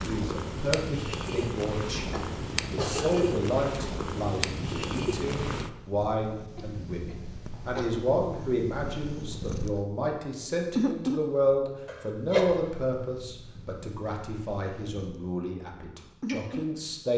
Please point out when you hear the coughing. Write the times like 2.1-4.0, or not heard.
2.1-3.4, 6.5-8.1, 11.8-12.5.